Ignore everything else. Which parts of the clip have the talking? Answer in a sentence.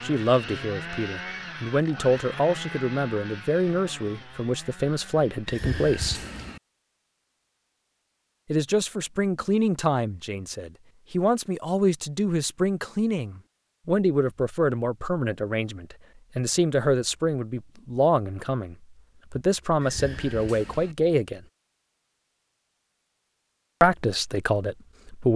The talking can be heard from 0.0 to 6.2 s, from 8.5 to 21.4 s and from 23.8 to 25.3 s.